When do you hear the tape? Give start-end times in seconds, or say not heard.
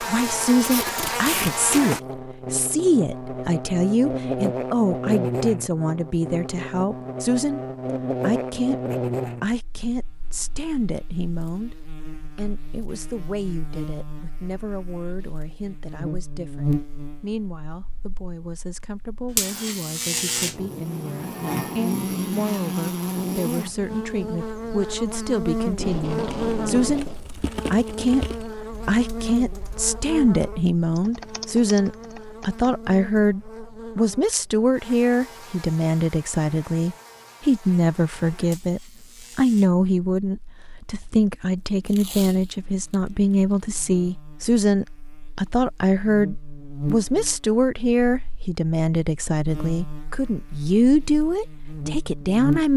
0.6-1.8, 25.6-27.2, 41.9-43.0.